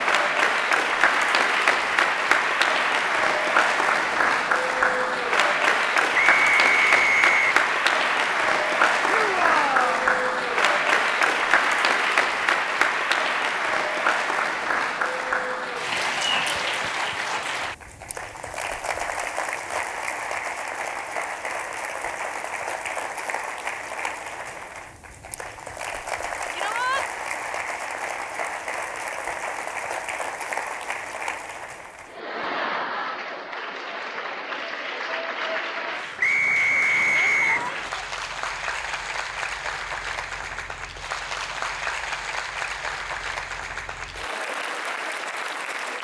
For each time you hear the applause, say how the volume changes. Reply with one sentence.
You can hear the applause from 0.0 to 46.0 s, getting quieter.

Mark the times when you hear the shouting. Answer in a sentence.
The shouting can be heard from 9.1 to 10.2 s, from 26.5 to 27.1 s and from 37.0 to 38.1 s.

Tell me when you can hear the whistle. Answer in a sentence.
The whistle can be heard from 6.2 to 7.5 s and from 36.2 to 37.6 s.